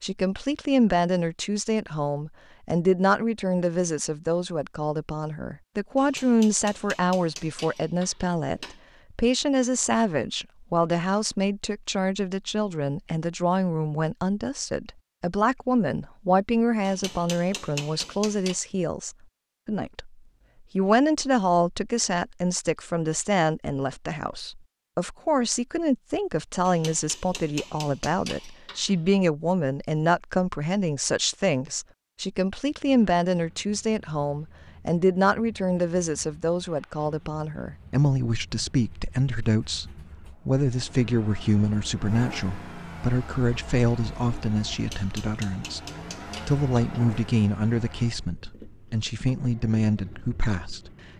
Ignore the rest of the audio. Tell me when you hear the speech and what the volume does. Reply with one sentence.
The speech can be heard from 0.0 to 20.1 s, at a steady volume; from 20.8 to 45.8 s, at a steady volume; and from 46.5 to 50.9 s, getting quieter then louder.